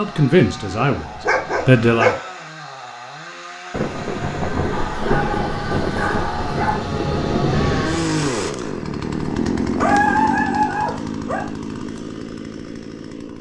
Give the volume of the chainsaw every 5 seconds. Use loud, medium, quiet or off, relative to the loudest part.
medium, loud, loud.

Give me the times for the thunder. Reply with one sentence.
The thunder can be heard from 3.7 to 8.1 s.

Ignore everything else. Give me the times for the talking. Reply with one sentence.
You can hear the talking from 0.0 to 2.1 s.